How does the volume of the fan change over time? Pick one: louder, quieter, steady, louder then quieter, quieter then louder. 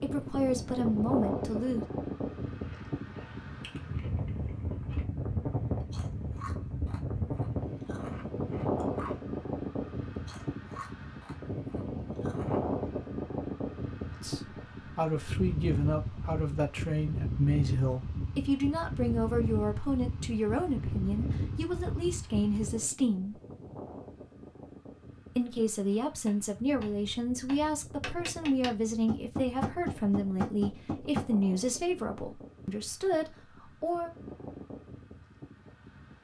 quieter.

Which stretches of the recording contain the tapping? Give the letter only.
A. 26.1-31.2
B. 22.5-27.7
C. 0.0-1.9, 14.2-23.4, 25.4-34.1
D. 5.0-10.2
A.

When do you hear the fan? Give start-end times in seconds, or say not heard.
0.0-36.1.